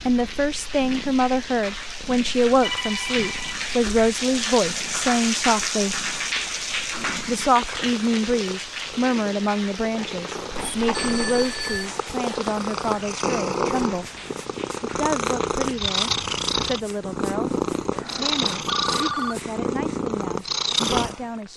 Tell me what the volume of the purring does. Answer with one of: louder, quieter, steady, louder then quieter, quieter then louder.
louder.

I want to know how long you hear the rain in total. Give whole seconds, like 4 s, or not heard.
17 s.